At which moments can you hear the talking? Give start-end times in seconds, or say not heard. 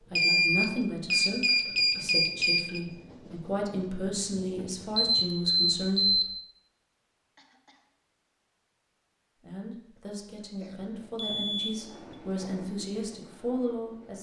0.1-6.2, 9.4-14.1.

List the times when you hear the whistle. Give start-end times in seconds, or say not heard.
not heard.